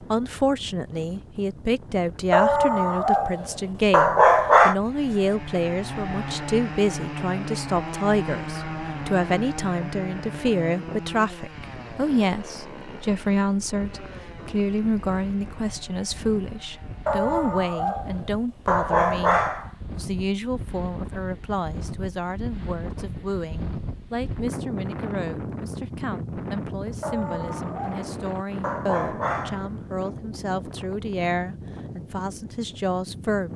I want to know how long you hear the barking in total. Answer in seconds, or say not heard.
8 s.